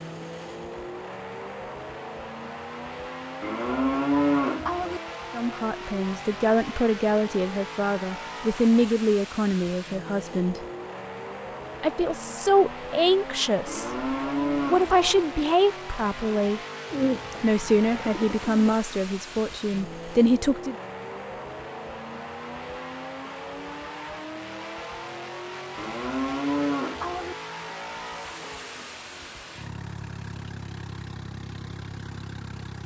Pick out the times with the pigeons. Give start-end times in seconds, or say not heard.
16.9-18.8.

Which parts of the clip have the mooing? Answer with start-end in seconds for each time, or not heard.
3.4-5.0, 13.7-15.2, 25.8-27.4.